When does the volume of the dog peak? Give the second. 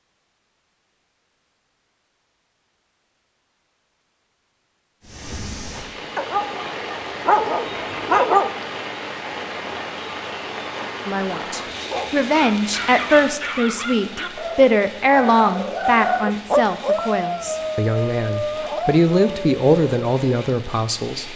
8 s.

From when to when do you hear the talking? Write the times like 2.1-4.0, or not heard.
11.1-21.3.